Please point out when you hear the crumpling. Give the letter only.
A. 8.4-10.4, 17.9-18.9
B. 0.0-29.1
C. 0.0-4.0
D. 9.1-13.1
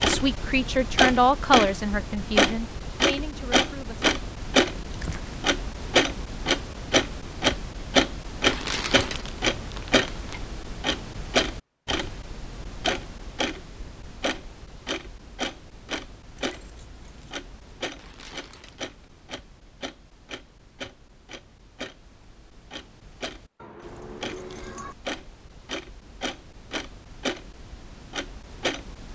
A.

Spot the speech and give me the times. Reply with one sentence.
The speech can be heard from 0.0 to 4.0 s.